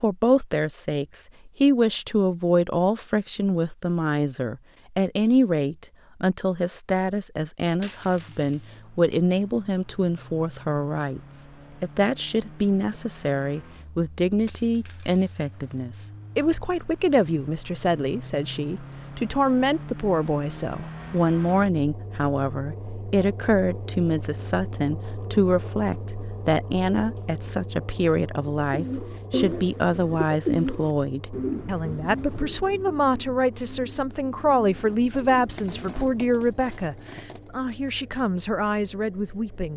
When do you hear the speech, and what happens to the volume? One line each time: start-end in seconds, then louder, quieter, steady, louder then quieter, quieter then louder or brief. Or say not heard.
0.0-39.7 steady.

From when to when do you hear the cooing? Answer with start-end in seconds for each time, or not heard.
28.6-36.3.